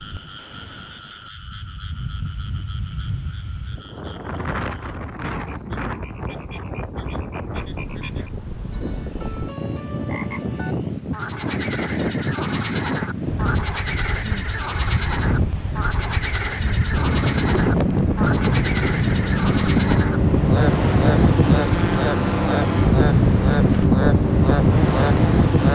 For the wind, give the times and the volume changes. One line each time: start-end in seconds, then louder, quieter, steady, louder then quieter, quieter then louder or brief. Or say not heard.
0.0-25.6 louder.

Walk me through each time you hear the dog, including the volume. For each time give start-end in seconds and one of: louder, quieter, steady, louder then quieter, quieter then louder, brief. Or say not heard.
not heard.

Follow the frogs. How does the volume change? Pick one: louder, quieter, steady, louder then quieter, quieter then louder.
louder.